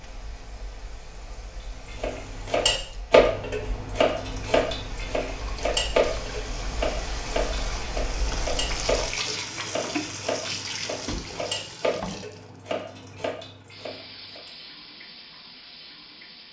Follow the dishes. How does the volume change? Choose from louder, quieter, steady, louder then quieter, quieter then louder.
quieter.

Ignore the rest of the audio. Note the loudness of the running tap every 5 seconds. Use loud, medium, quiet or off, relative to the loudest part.
quiet, loud, loud, medium.